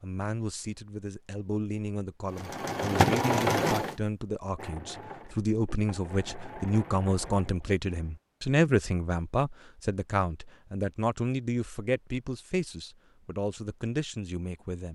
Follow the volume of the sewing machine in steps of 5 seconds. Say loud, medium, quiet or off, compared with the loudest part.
loud, quiet, off.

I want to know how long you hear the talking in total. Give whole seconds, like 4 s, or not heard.
15 s.